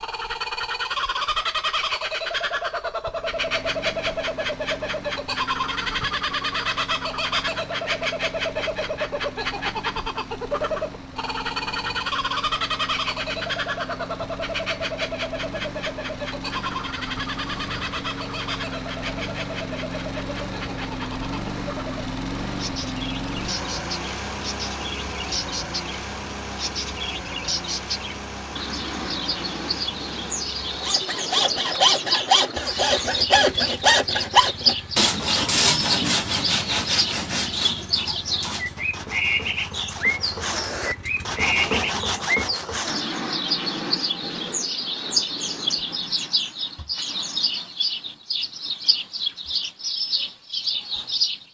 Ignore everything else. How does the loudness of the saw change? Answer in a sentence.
The loudness of the saw goes down, then up.